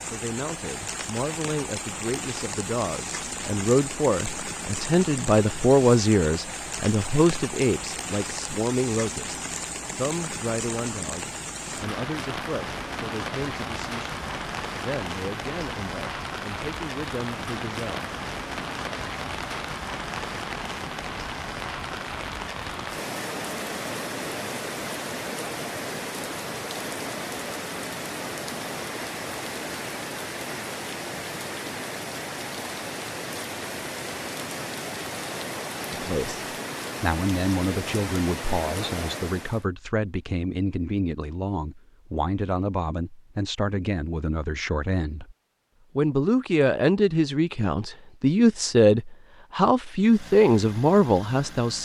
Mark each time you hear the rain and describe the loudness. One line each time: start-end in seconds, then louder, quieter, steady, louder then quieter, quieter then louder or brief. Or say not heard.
0.0-39.6 steady.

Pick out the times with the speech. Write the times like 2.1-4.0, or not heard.
0.1-18.1, 35.9-45.4, 46.0-51.8.